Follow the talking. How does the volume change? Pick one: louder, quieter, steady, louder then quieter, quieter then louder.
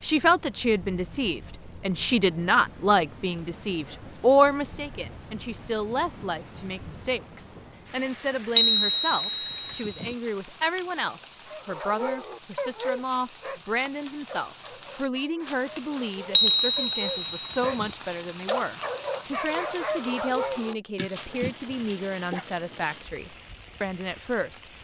quieter.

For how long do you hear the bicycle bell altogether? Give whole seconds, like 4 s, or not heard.
3 s.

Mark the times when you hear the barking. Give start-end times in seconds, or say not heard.
11.4-13.7, 14.2-17.9, 18.4-22.4.